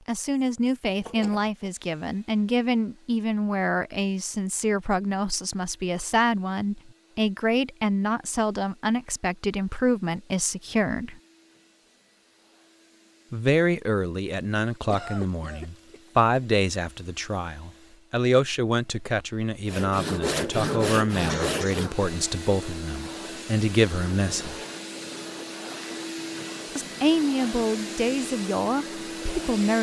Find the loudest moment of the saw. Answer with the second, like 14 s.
21 s.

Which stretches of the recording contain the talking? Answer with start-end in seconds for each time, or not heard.
0.1-11.2, 13.3-24.6, 26.8-29.7.